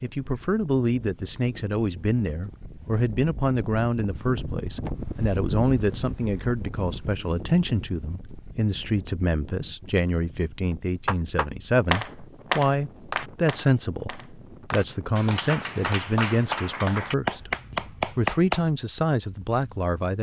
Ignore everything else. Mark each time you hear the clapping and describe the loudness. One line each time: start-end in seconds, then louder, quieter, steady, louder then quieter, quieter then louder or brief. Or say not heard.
11.1-18.6 quieter then louder.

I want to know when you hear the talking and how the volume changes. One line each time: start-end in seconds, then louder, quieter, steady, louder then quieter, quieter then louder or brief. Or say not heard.
0.0-20.1 steady.